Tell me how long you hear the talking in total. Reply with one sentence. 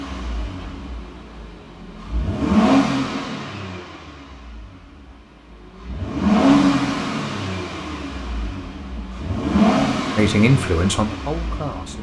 The talking can be heard for 2 seconds in total.